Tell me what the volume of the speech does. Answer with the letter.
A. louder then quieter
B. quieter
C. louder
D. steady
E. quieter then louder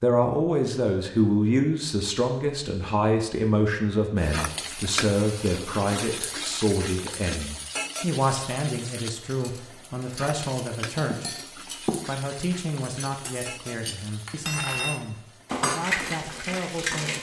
B.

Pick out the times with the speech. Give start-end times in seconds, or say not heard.
0.0-17.1.